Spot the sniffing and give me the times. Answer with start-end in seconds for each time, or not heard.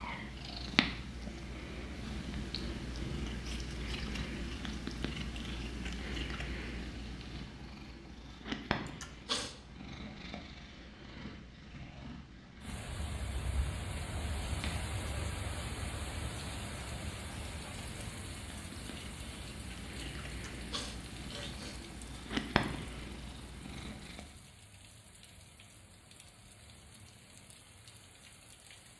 8.8-9.6, 20.2-21.8.